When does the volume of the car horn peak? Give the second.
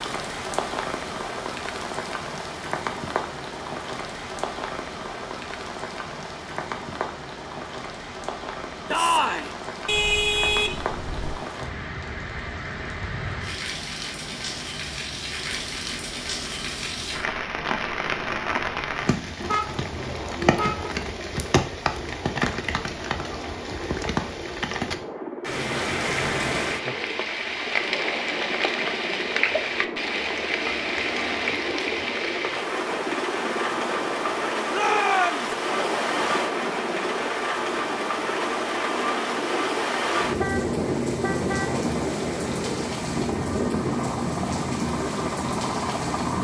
10 s.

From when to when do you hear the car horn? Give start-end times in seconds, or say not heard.
9.8-11.4, 19.4-20.9, 40.4-41.8.